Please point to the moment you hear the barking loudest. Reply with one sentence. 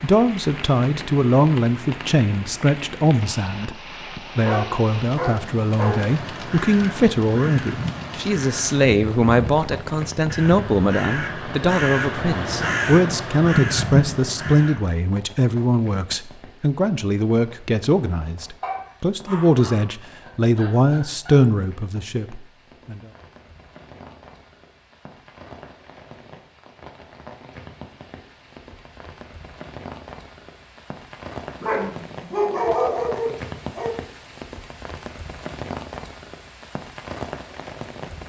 The volume of the barking peaks at 33 seconds.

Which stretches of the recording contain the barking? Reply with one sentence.
The barking can be heard from 4.5 to 6.0 s, from 18.6 to 21.4 s and from 31.6 to 34.0 s.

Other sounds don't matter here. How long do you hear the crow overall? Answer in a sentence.
You can hear the crow for 9 seconds altogether.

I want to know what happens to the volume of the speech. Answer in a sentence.
The volume of the speech stays about the same.